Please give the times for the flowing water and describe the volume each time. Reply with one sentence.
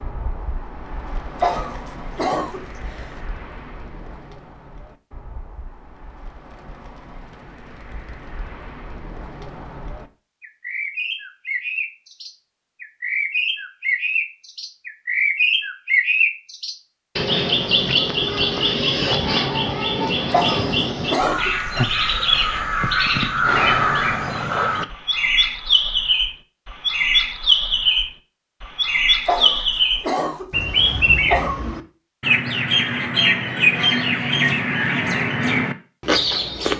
The flowing water can't be heard in this clip.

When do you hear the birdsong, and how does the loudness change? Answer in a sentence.
The birdsong can be heard from 0.0 to 36.7 s, getting louder.